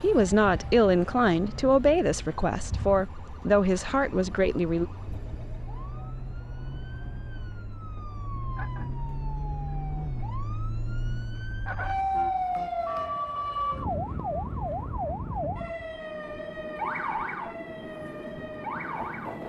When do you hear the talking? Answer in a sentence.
You can hear the talking from 0.0 to 4.8 s.